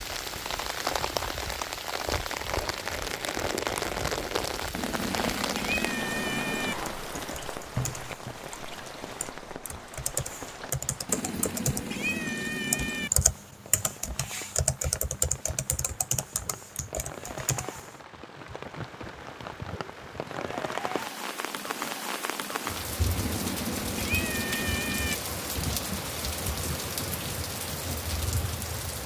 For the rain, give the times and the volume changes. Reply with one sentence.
The rain can be heard from 0.0 to 29.0 s, getting quieter then louder.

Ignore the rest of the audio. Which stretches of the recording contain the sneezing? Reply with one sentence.
You can't hear the sneezing here.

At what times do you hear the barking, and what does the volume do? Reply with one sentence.
You can't hear the barking here.